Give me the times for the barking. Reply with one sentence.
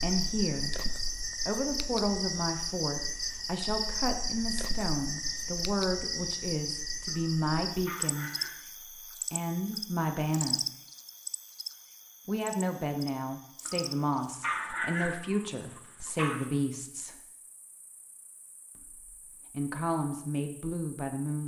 You can hear the barking from 7.0 to 8.6 s and from 13.7 to 16.4 s.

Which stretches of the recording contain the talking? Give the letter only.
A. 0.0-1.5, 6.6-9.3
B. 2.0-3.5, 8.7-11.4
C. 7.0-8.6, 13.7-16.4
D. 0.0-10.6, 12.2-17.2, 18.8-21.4
D.